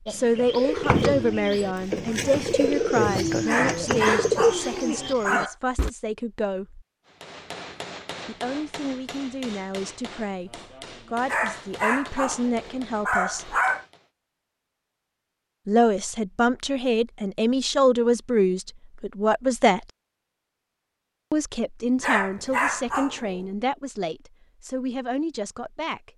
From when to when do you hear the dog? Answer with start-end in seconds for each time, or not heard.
3.5-5.5, 11.2-13.8, 22.0-23.4.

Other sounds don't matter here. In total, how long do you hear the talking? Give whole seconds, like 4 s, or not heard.
21 s.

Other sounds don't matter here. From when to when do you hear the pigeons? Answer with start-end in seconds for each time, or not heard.
0.1-5.9.